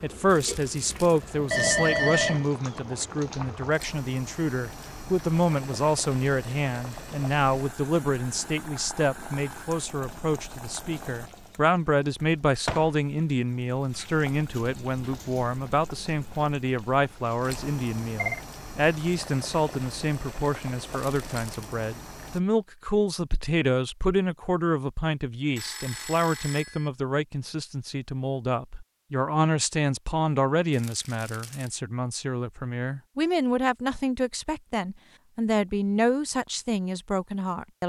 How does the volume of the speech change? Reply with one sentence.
The loudness of the speech stays about the same.